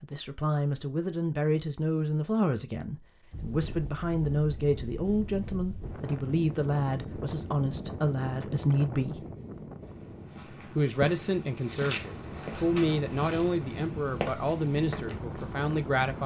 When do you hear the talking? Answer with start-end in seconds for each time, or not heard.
0.0-9.2, 10.8-16.2.